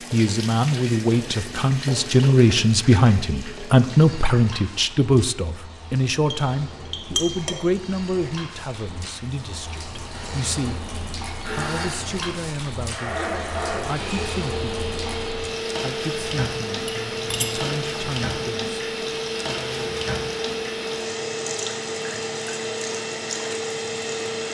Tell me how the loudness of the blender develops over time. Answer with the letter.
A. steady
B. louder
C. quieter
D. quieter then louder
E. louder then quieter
A.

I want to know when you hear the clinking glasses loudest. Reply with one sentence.
The loudest moment of the clinking glasses is at 7 seconds.